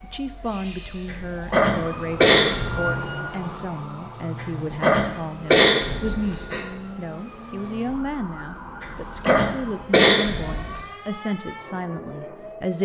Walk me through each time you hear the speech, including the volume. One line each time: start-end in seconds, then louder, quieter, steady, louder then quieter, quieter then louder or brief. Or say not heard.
0.0-12.8 steady.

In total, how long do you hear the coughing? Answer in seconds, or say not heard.
6 s.